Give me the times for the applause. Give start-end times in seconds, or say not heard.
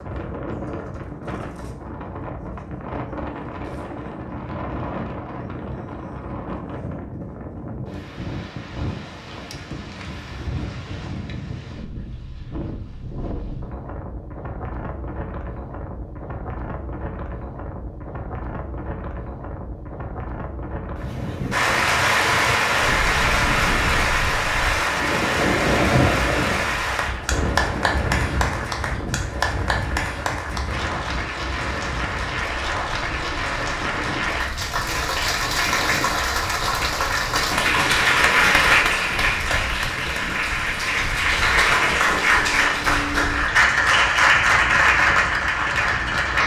21.5-46.4.